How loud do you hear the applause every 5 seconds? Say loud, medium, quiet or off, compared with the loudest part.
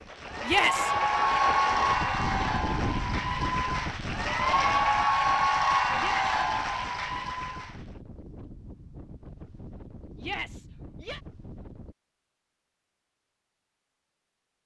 loud, loud, off.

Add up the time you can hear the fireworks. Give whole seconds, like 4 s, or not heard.
not heard.